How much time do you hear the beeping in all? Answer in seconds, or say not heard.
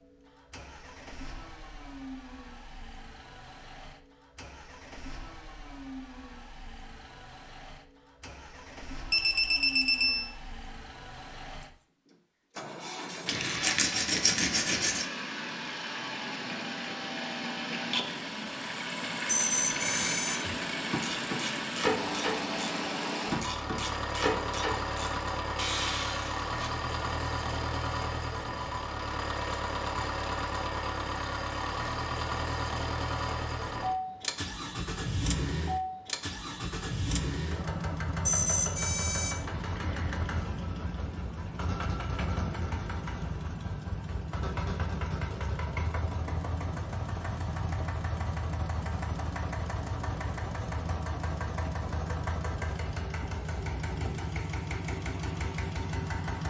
4 s.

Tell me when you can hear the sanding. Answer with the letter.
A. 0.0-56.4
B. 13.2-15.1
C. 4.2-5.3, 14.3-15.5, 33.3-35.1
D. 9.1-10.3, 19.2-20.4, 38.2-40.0
B.